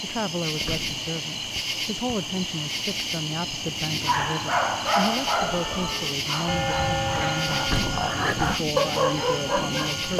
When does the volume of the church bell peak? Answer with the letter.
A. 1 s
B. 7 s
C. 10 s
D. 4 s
B.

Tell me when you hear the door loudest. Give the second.
8 s.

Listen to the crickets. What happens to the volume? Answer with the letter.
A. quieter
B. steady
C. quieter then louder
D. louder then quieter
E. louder
B.